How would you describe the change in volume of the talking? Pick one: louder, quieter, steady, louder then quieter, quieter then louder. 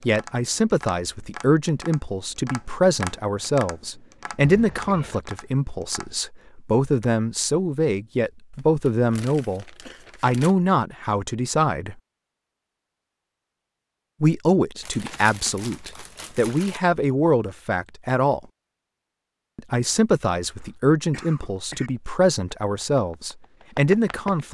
steady.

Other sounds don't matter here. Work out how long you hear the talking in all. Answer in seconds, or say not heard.
21 s.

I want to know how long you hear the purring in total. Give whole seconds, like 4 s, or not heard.
not heard.